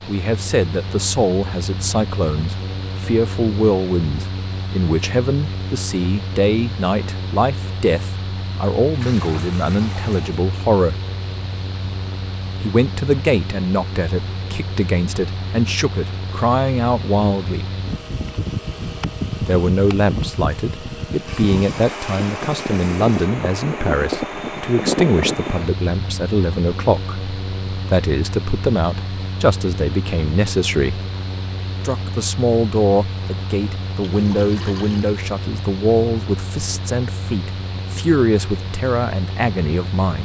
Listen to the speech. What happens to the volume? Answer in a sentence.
The volume of the speech stays about the same.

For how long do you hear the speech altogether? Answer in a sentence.
The speech can be heard for 36 seconds in total.